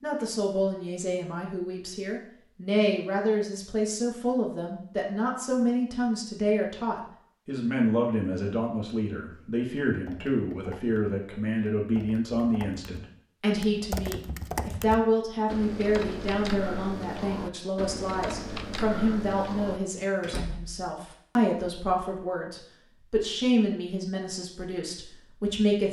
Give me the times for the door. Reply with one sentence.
You can hear the door from 20.2 to 21.1 s.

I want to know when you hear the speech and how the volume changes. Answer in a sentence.
The speech can be heard from 0.0 to 25.8 s, at a steady volume.